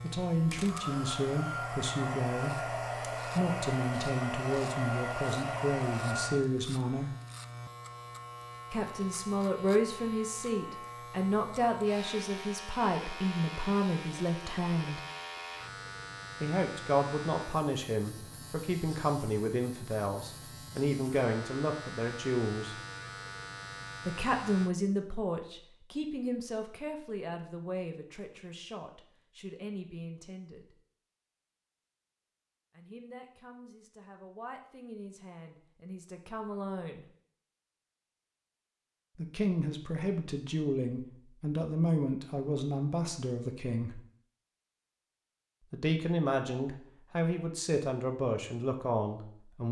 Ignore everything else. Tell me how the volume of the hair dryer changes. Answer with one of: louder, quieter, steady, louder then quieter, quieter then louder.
steady.